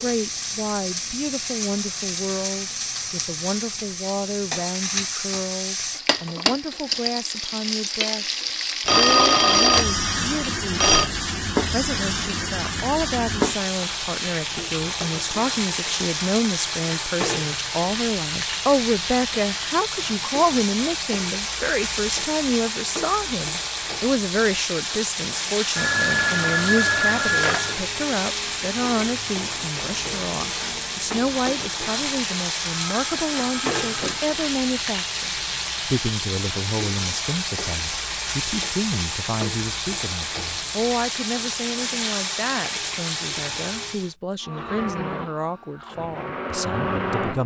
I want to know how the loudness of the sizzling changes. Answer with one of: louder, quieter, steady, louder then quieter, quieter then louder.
steady.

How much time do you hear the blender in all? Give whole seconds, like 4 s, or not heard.
3 s.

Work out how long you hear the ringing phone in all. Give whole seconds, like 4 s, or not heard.
6 s.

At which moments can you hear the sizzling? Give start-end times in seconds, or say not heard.
0.0-44.1.